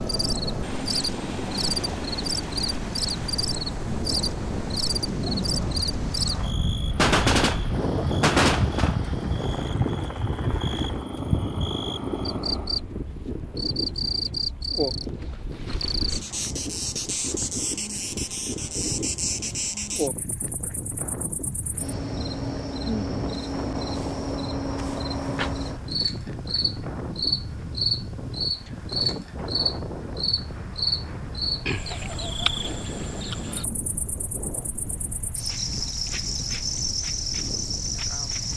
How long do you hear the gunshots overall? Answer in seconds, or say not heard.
2 s.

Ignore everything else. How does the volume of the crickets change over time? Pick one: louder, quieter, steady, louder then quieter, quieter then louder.
steady.